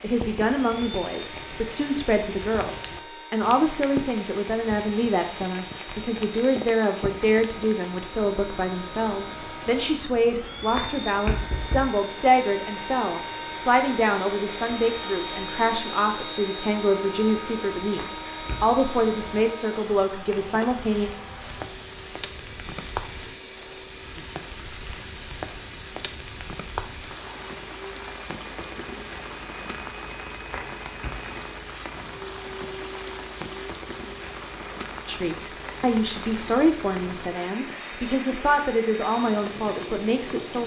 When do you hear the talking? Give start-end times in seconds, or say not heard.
0.0-21.1, 35.0-40.6.